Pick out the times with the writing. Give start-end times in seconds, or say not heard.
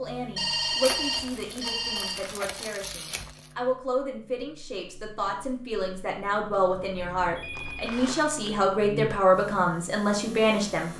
not heard.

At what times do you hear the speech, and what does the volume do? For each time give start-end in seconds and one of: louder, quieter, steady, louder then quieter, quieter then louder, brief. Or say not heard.
0.0-10.9 louder.